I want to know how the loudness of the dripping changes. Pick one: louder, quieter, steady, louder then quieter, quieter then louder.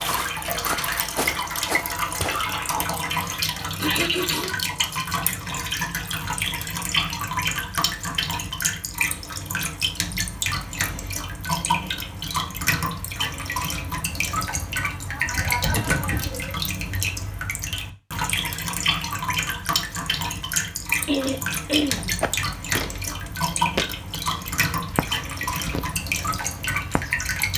steady.